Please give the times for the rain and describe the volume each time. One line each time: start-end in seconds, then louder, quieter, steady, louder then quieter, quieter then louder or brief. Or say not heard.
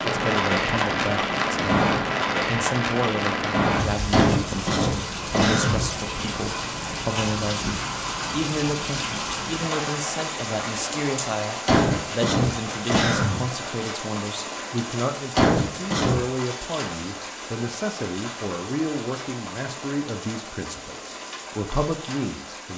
0.0-22.7 quieter.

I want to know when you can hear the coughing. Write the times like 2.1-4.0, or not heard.
4.1-5.8, 11.7-13.4, 15.3-16.2.